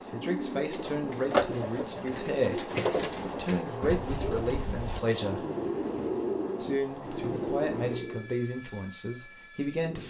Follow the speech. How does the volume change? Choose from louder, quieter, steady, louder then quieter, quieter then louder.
steady.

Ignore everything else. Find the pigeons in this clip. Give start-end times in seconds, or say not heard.
0.0-8.3.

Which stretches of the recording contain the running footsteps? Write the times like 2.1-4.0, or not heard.
not heard.